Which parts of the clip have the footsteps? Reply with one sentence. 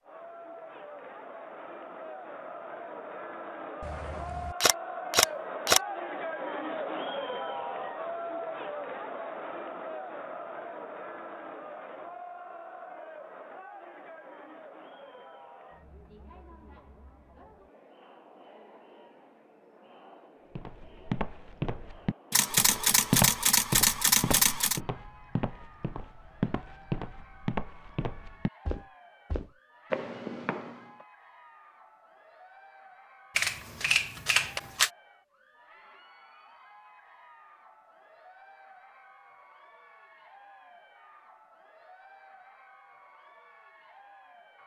You can hear the footsteps from 20.6 to 31.1 s.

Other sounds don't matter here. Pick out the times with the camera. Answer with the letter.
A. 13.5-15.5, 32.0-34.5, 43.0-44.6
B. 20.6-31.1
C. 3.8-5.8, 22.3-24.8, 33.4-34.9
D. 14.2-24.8
C.